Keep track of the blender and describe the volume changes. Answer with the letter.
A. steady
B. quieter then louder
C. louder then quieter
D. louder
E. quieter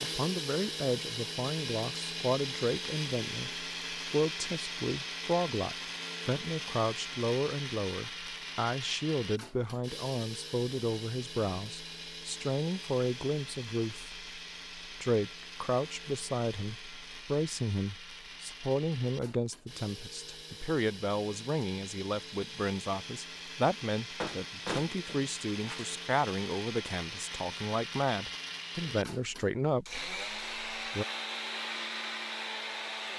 B.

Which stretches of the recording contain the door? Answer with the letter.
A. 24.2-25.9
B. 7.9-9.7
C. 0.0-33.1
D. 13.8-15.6
A.